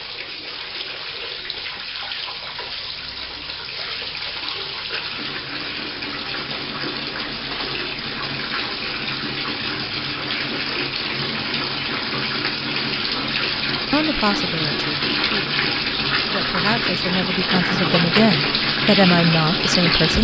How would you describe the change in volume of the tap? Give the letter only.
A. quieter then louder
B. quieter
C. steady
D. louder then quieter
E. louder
E.